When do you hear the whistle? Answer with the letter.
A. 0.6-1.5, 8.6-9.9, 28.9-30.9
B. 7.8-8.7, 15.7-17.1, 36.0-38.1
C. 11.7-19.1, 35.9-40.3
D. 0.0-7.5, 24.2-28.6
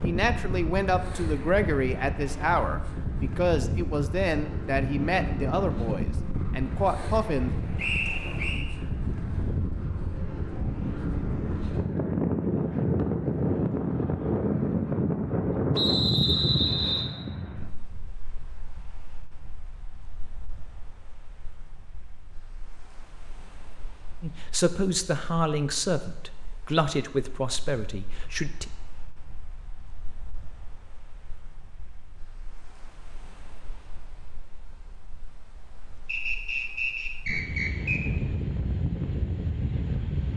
B.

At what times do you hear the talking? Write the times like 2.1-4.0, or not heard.
0.0-7.5, 24.2-28.6.